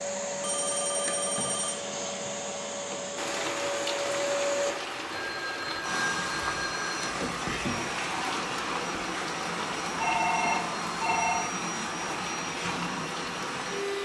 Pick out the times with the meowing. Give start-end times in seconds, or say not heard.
not heard.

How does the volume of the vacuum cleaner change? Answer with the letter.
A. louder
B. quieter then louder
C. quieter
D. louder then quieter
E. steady
E.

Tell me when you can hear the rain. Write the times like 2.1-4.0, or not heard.
3.1-13.9.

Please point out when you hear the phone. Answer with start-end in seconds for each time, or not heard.
0.4-2.0, 5.1-7.0, 9.9-11.5.